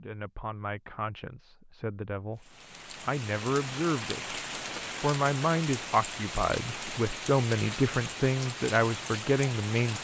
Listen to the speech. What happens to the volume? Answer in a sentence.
The volume of the speech goes up.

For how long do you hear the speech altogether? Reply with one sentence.
You can hear the speech for 9 seconds altogether.